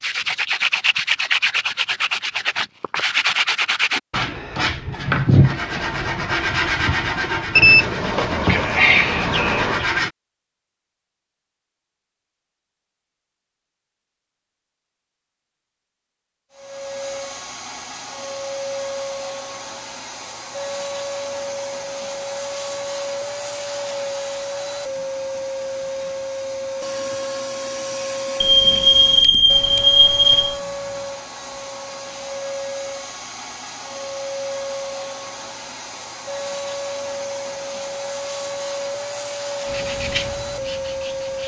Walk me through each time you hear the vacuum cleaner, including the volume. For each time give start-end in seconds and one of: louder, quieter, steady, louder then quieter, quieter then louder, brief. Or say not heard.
16.5-41.4 steady.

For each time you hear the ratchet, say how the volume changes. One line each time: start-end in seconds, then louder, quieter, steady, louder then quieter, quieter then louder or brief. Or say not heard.
not heard.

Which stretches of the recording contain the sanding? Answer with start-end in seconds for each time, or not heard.
0.0-10.1, 39.6-41.4.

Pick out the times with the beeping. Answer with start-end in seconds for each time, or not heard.
7.5-9.8, 28.4-30.6.